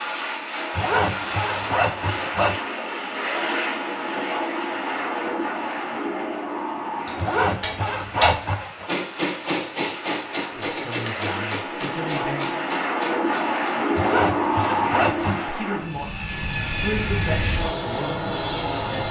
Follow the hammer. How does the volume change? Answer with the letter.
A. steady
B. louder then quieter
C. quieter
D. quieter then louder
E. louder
C.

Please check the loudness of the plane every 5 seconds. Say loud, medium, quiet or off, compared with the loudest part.
loud, medium, loud, loud.